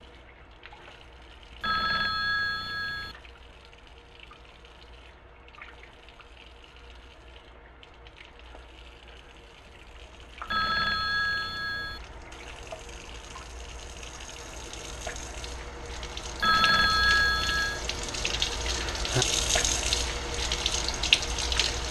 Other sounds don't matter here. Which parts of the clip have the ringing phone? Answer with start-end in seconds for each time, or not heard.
1.6-3.1, 10.4-12.0, 16.4-17.8.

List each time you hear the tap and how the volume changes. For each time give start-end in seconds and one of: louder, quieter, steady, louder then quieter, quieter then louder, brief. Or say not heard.
0.0-21.8 louder.